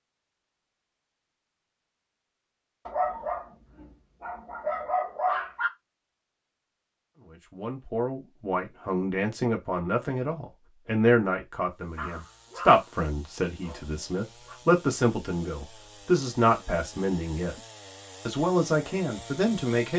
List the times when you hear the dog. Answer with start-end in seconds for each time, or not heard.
2.9-5.7, 11.9-12.8, 13.6-14.6.